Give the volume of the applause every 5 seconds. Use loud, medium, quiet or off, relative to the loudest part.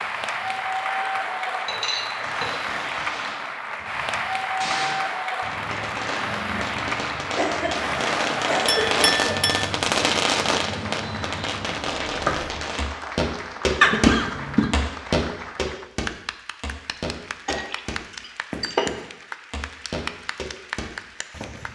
loud, loud, medium, medium, medium.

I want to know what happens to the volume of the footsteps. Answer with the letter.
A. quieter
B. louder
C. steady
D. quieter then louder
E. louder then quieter
A.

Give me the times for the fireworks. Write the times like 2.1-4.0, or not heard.
2.2-12.8.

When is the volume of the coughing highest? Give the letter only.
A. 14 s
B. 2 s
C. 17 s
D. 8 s
A.